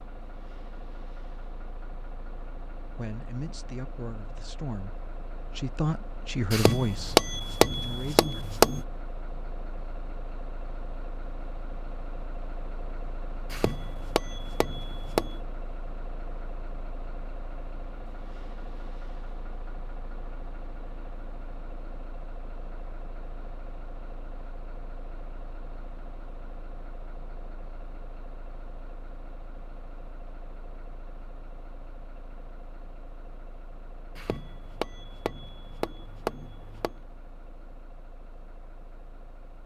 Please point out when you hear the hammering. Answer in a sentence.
You can hear the hammering from 6.5 to 8.8 s, from 13.5 to 15.4 s and from 34.1 to 37.0 s.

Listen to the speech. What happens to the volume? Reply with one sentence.
The loudness of the speech goes up, then down.